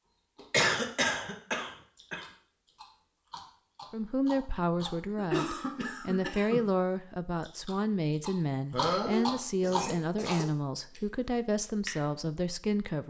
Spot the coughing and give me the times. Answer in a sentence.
The coughing can be heard from 0.5 to 2.2 s, from 4.8 to 6.7 s and from 8.7 to 10.4 s.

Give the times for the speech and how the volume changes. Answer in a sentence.
The speech can be heard from 3.9 to 13.0 s, at a steady volume.